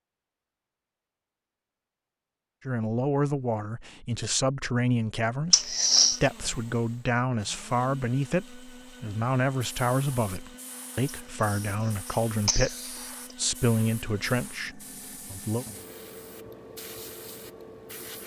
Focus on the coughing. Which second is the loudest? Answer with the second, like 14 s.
6 s.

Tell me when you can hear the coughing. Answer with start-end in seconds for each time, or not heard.
5.5-6.2, 11.1-13.3.